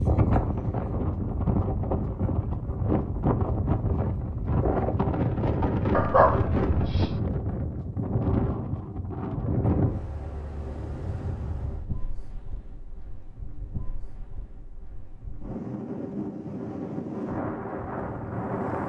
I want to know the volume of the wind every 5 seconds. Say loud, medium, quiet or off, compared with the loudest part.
loud, loud, quiet, medium.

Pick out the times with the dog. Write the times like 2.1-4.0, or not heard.
5.9-7.2.